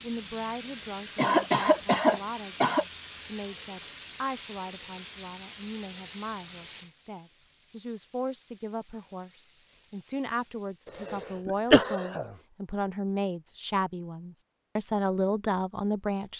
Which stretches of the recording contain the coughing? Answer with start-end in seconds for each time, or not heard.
1.1-2.9, 11.0-12.3.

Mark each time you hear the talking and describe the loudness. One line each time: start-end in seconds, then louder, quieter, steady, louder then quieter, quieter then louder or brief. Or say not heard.
0.0-16.3 louder.